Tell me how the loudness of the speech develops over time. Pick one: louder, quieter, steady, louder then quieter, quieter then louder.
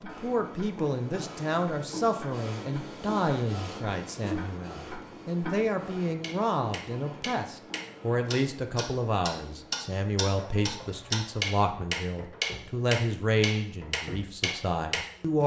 steady.